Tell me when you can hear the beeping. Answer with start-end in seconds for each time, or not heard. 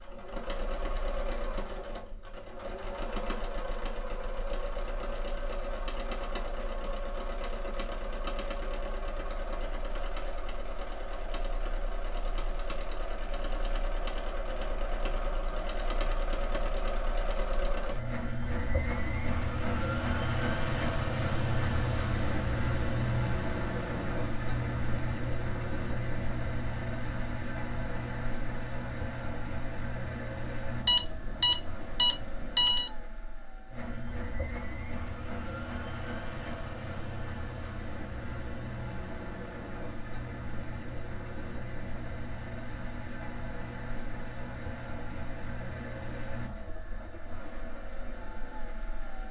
30.9-32.9.